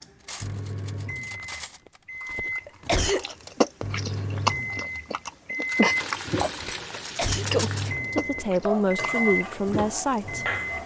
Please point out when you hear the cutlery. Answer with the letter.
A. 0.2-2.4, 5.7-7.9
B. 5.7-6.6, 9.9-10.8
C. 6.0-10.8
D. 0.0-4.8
A.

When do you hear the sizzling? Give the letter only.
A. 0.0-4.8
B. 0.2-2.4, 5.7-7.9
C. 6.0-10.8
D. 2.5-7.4
C.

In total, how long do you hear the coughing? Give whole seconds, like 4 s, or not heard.
2 s.